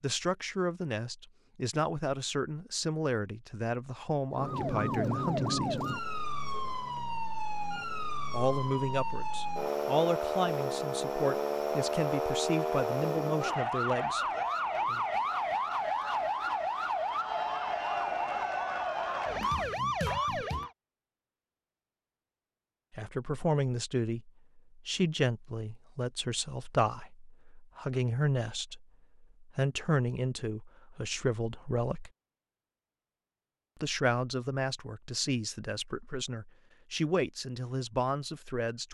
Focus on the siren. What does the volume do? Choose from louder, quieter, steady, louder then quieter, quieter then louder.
steady.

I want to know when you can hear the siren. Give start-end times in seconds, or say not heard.
4.3-20.7.